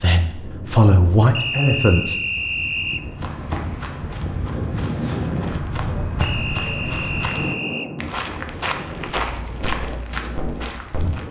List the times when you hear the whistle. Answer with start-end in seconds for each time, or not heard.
1.3-3.0, 6.2-7.9.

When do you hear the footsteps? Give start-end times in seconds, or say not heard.
3.1-11.2.